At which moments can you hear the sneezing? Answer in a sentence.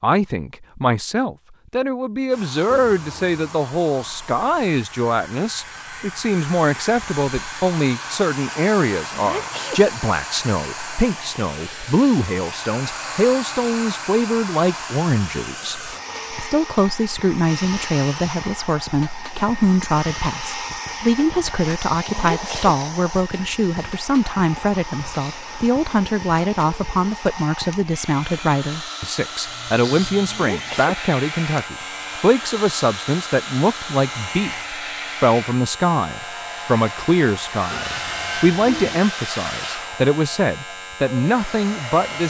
You can hear the sneezing from 9.2 to 9.8 s, from 22.1 to 22.8 s and from 30.2 to 30.9 s.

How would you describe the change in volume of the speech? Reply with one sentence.
The volume of the speech stays about the same.